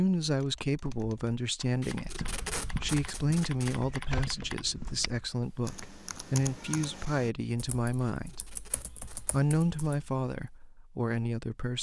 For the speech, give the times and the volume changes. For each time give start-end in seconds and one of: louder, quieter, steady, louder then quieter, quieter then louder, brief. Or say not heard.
0.0-11.7 steady.